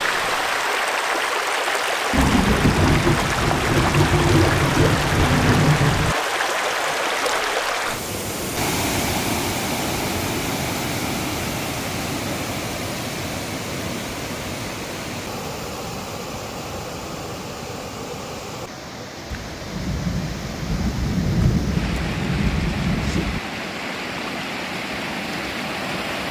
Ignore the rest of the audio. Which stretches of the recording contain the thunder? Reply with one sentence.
The thunder can be heard from 2.1 to 6.2 s and from 19.3 to 23.4 s.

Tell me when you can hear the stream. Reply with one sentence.
You can hear the stream from 0.0 to 26.2 s.